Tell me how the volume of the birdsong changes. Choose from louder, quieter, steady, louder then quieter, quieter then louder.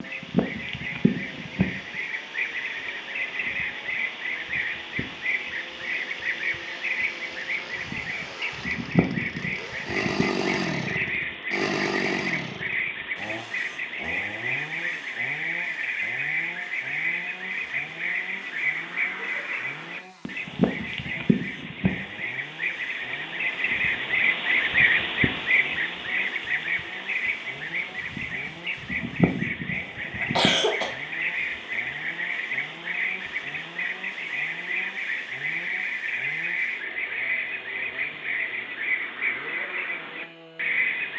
steady.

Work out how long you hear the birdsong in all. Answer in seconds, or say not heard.
41 s.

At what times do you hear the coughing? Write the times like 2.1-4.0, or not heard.
30.2-30.9.